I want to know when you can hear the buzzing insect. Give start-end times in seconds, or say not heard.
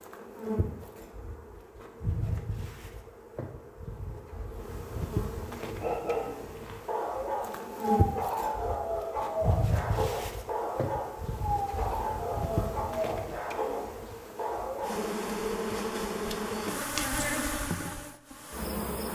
0.0-19.0.